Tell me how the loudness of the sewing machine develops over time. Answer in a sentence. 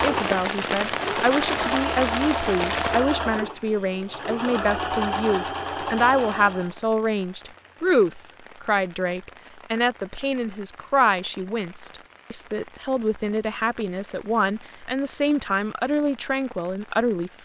The loudness of the sewing machine stays about the same.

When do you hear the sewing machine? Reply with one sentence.
The sewing machine can be heard from 0.0 to 6.8 s.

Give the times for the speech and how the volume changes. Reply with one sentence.
The speech can be heard from 0.0 to 17.3 s, at a steady volume.